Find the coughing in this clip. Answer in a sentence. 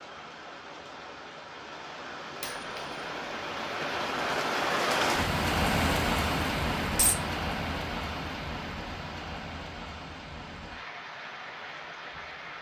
You can't hear the coughing here.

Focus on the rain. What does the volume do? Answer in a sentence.
The volume of the rain goes up, then down.